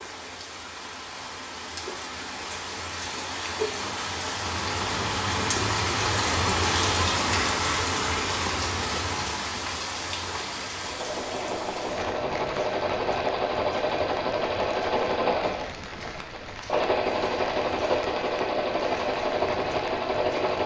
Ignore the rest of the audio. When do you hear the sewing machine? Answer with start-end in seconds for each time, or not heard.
10.8-20.6.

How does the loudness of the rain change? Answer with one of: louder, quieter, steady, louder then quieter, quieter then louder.
louder then quieter.